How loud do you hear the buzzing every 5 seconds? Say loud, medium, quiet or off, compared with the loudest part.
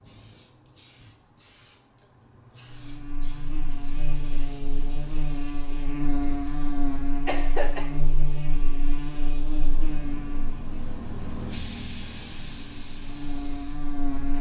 medium, loud, loud.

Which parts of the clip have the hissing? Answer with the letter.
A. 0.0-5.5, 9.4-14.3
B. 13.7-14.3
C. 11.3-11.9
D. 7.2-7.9
A.